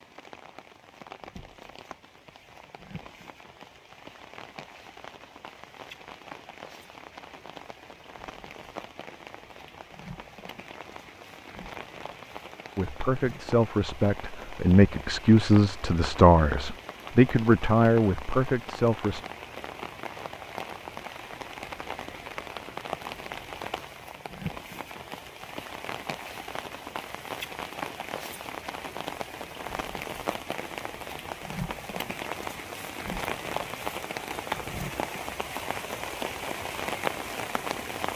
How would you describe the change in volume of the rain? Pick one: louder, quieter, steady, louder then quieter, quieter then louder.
louder.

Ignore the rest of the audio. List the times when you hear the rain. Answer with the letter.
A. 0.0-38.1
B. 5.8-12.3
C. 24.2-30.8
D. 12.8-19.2
A.